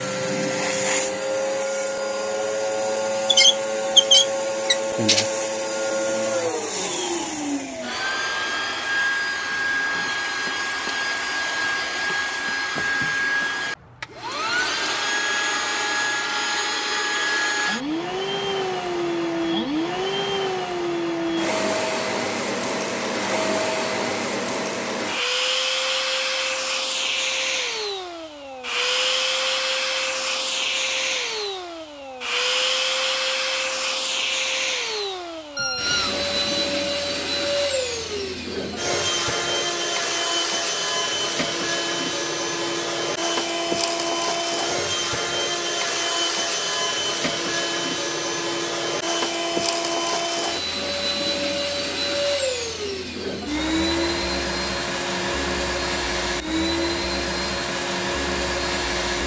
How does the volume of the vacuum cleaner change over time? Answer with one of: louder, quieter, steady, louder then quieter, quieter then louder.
steady.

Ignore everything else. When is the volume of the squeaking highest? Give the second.
4 s.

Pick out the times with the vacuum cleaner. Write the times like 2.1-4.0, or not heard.
0.0-59.2.